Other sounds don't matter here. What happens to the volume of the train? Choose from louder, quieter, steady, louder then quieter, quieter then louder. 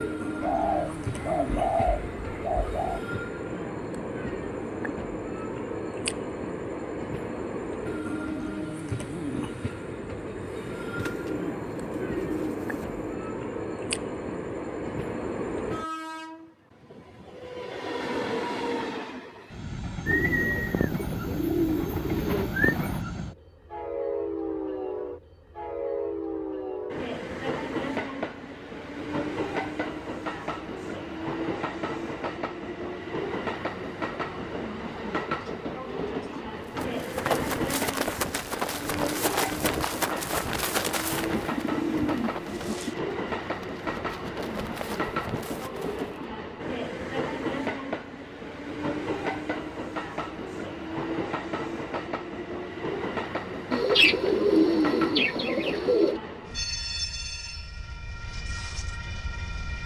steady.